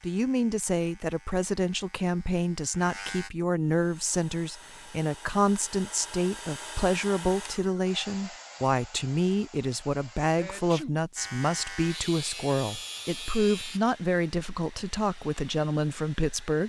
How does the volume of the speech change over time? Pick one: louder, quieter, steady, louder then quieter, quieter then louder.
steady.